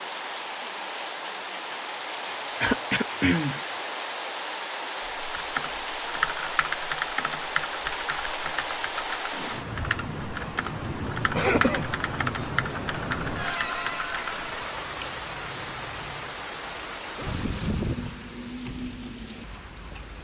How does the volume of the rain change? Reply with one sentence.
The volume of the rain stays about the same.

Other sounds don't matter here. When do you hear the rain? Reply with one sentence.
The rain can be heard from 0.0 to 20.1 s.